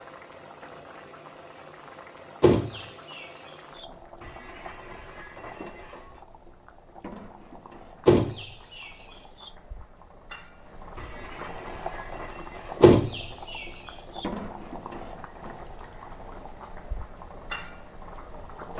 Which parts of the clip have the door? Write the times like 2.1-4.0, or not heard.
2.4-3.9, 8.1-9.5, 12.8-14.2.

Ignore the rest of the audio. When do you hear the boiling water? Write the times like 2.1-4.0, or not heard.
0.0-18.7.